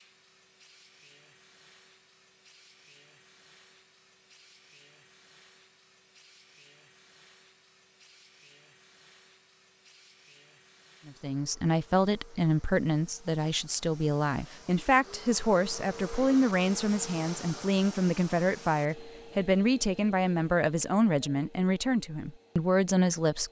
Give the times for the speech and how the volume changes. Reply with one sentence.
The speech can be heard from 11.1 to 23.4 s, at a steady volume.